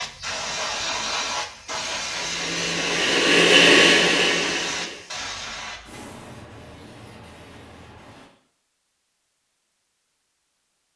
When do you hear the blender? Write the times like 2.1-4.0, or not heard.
2.0-5.0.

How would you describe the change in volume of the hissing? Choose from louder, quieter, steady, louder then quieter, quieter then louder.
quieter.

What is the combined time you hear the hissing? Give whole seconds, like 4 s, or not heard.
8 s.